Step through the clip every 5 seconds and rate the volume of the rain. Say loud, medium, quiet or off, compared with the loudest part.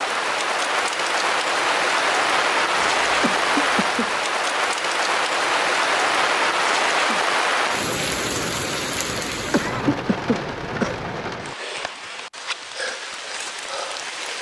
loud, loud, medium.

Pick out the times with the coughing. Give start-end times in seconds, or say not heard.
2.8-4.2, 9.1-11.1.